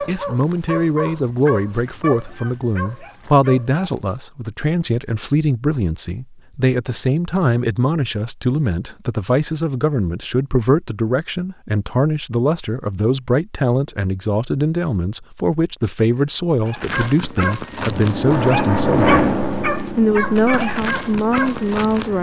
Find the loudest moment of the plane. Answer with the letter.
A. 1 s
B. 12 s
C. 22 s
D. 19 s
D.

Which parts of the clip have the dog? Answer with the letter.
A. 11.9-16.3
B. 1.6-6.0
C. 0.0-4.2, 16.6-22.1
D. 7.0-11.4
C.